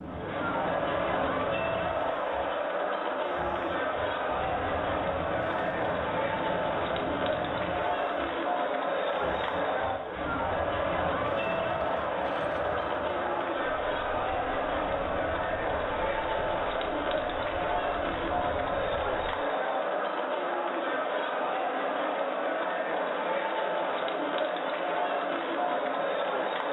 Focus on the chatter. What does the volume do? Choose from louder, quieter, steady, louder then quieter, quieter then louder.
steady.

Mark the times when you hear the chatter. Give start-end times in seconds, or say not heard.
0.0-26.6.